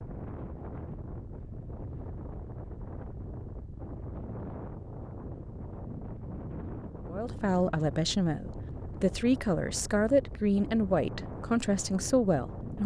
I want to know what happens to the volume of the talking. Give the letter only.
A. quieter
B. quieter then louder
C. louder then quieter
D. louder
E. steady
E.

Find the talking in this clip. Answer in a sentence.
You can hear the talking from 7.1 to 12.8 s.